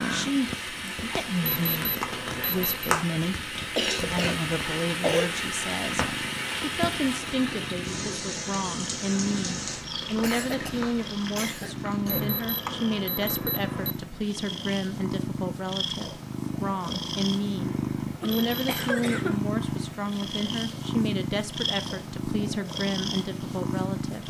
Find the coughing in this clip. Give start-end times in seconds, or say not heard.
3.8-5.3, 10.2-12.2, 18.2-19.4.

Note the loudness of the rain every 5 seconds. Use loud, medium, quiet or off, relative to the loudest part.
loud, loud, medium, off, off.